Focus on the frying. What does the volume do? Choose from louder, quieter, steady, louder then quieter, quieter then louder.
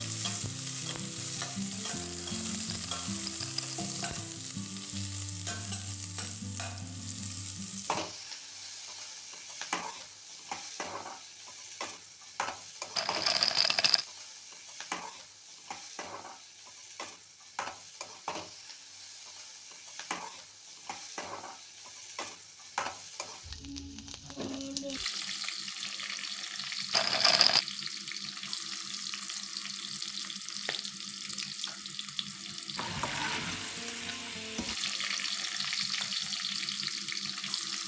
quieter then louder.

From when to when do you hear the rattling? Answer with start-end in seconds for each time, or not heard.
1.7-3.8, 12.9-14.1, 26.9-27.6.